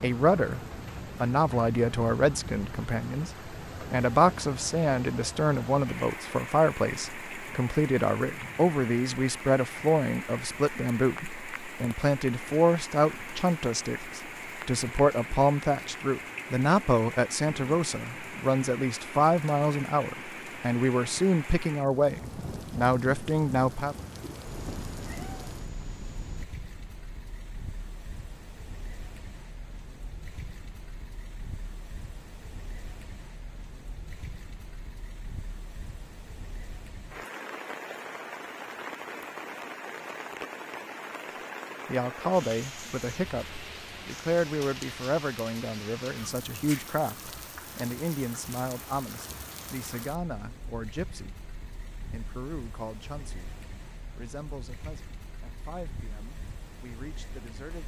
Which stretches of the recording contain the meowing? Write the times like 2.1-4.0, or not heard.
24.4-26.4.